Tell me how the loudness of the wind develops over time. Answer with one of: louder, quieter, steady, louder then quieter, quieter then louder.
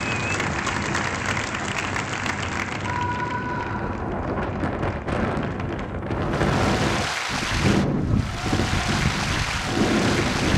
louder.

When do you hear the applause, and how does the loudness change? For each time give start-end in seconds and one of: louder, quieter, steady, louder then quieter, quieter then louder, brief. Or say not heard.
0.0-10.5 quieter then louder.